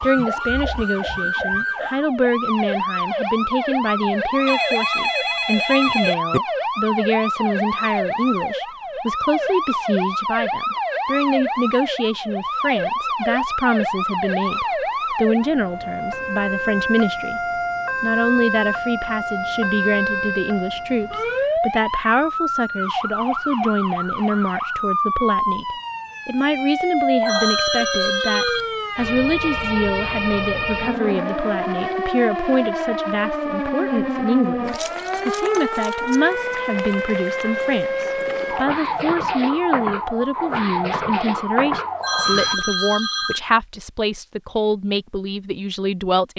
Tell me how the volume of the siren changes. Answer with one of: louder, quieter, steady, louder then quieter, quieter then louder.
steady.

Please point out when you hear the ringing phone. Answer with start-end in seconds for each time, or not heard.
4.5-6.4, 27.2-28.6, 42.0-43.4.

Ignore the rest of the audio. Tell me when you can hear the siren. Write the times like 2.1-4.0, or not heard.
0.0-42.6.